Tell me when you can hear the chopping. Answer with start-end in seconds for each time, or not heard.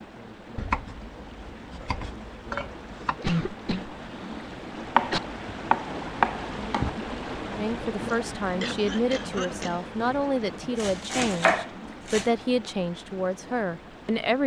0.6-3.2, 5.0-6.9, 10.8-12.3.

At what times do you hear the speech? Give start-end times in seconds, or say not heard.
7.5-14.4.